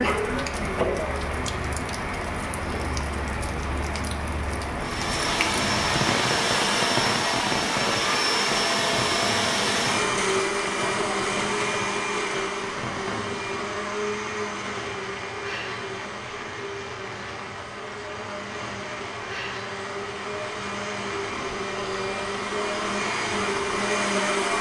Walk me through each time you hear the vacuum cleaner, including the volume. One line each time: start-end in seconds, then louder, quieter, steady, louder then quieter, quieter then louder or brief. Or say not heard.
4.8-24.5 quieter then louder.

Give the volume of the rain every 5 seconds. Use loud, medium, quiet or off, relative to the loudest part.
loud, loud, medium, medium, medium.